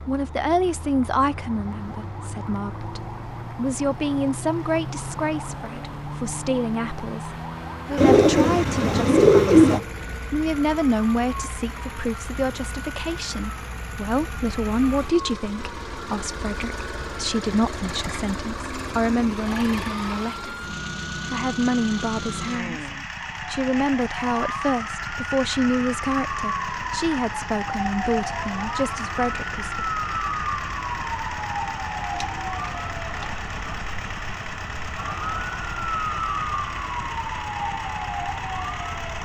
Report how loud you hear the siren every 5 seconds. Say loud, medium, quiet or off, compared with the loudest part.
medium, medium, medium, medium, medium, loud, loud, loud.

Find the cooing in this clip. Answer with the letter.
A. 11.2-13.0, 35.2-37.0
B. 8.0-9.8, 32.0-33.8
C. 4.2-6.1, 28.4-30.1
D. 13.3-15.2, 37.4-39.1
B.